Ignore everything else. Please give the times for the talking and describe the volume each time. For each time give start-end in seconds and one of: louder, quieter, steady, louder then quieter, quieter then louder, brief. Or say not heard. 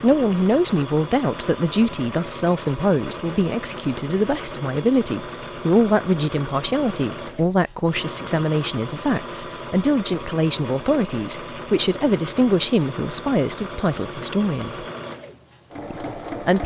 0.0-14.8 steady
15.9-16.6 brief.